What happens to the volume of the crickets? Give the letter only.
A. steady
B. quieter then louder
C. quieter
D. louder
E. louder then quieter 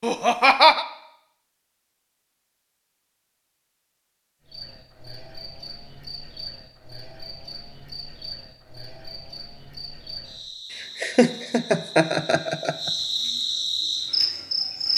D.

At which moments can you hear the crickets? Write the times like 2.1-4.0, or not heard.
4.5-14.9.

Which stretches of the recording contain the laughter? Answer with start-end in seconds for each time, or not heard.
0.0-0.8, 10.8-12.9.